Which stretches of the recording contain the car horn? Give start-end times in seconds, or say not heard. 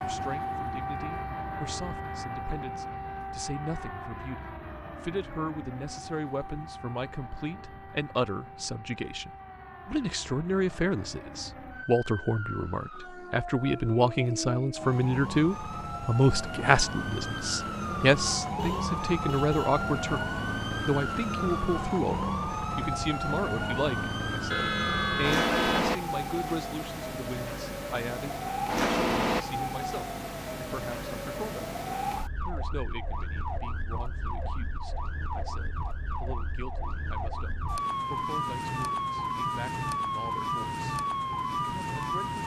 18.6-19.7, 24.5-25.9.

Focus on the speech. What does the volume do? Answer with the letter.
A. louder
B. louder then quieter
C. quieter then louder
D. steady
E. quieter
B.